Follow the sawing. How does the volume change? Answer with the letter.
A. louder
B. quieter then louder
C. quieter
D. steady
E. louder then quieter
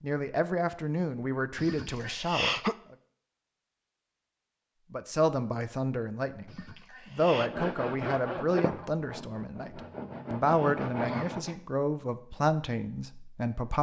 B.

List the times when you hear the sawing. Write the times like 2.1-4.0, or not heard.
7.3-11.6.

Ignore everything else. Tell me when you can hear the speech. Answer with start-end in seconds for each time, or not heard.
0.0-3.0, 4.9-13.7.